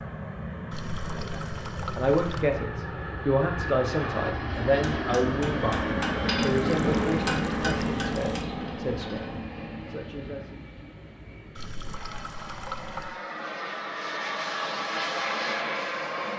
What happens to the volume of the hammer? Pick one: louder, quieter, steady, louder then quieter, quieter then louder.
louder then quieter.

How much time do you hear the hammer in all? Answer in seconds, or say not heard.
5 s.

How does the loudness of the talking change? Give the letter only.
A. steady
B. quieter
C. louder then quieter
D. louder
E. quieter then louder
B.